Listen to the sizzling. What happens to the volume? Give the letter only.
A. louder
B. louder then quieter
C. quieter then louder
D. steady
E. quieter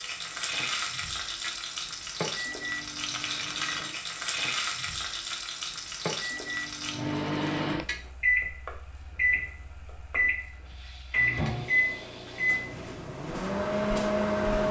E.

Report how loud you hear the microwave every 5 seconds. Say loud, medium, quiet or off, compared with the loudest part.
quiet, loud, loud.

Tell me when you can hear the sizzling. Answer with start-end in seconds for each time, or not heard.
0.0-12.7.